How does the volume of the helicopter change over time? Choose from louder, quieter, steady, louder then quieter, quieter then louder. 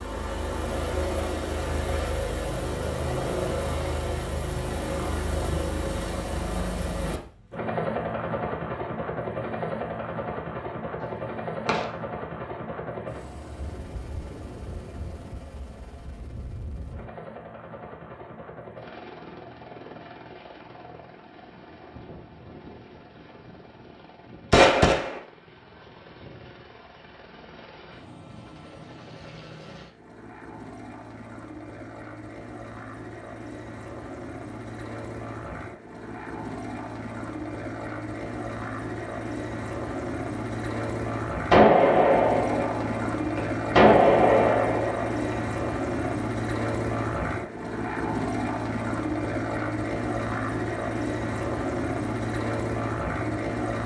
quieter then louder.